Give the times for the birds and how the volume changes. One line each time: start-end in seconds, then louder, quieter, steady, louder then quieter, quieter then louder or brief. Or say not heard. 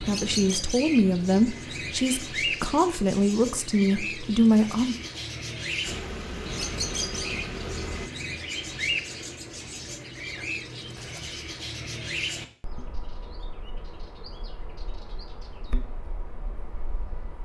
0.0-17.4 quieter.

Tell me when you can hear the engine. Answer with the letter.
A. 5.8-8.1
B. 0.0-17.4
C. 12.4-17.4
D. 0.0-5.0
A.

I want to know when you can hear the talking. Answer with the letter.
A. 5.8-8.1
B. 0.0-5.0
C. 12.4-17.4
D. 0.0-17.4
B.